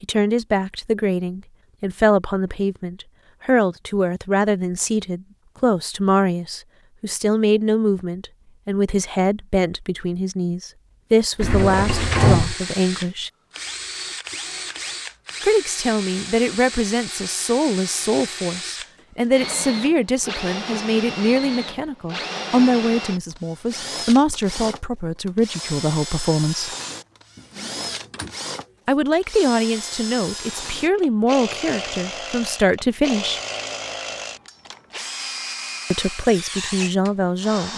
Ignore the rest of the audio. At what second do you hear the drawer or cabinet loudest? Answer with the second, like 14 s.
12 s.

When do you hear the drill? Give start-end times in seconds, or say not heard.
11.4-37.7.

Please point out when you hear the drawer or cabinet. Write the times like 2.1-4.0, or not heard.
11.4-12.6, 27.4-28.4.